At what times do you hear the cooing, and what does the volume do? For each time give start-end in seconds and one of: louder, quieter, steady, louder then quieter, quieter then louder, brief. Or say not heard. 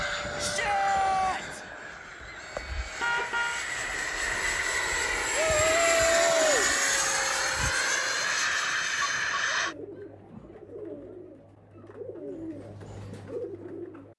9.7-14.1 louder.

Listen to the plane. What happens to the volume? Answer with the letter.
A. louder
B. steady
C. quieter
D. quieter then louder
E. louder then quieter
A.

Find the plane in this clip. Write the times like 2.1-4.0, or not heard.
0.0-9.8.